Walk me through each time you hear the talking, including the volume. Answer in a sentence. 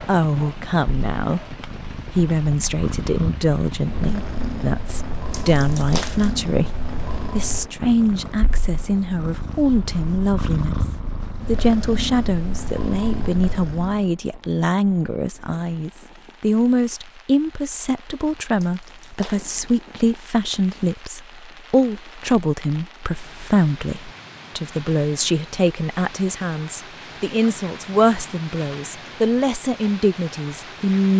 The talking can be heard from 0.0 to 31.1 s, at a steady volume.